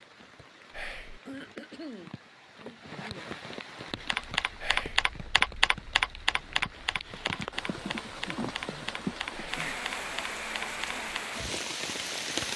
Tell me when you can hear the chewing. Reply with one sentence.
You can't hear the chewing here.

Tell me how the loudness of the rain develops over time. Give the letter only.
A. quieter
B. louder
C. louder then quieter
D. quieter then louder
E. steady
B.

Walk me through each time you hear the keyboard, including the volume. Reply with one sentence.
You can hear the keyboard from 3.9 to 11.2 s, getting quieter.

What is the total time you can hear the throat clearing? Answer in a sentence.
You can hear the throat clearing for 2 seconds altogether.